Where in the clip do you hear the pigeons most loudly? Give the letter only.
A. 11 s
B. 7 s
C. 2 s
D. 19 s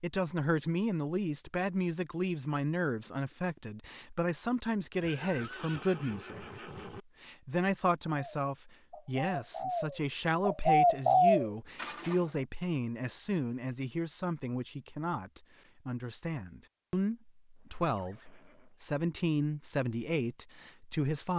A.